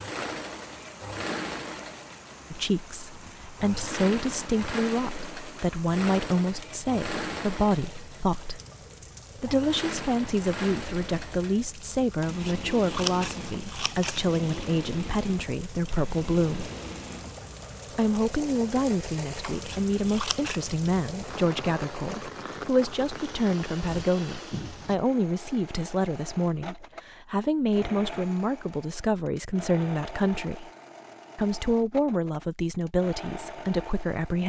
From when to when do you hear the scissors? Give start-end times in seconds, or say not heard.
12.2-14.4, 19.5-20.8.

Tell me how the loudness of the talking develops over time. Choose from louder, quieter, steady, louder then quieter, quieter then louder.
steady.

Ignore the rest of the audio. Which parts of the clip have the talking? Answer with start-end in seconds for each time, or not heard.
2.5-8.6, 9.3-16.7, 17.9-30.7, 31.4-34.4.